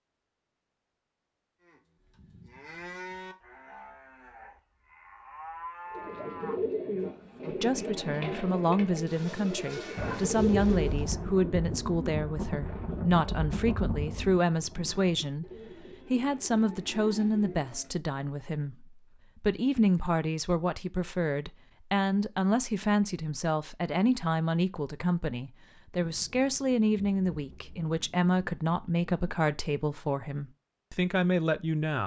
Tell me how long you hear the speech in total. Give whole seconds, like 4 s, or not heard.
24 s.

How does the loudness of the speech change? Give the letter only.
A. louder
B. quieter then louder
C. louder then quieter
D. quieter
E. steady
E.